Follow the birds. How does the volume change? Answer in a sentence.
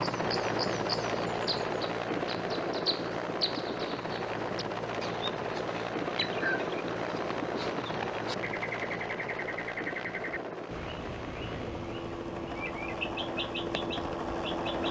The loudness of the birds stays about the same.